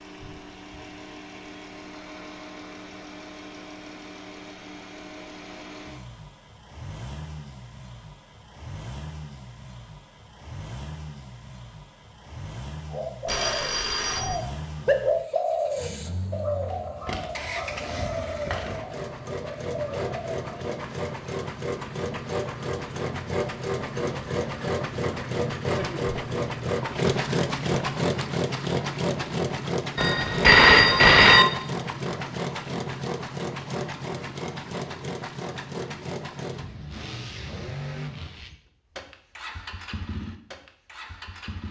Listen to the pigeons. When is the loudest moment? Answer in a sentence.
The volume of the pigeons peaks at 15 seconds.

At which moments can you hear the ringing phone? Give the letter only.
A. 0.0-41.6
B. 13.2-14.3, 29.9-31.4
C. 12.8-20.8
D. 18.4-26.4
B.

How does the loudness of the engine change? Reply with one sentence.
The volume of the engine goes up, then down.